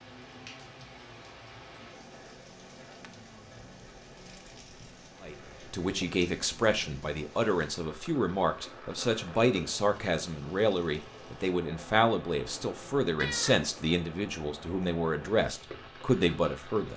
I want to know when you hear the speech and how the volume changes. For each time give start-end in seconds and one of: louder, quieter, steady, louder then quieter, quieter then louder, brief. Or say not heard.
5.2-16.9 steady.